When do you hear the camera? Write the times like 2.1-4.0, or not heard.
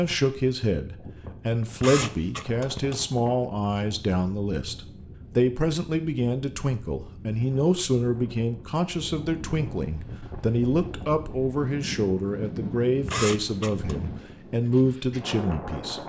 1.8-3.0, 13.1-14.1.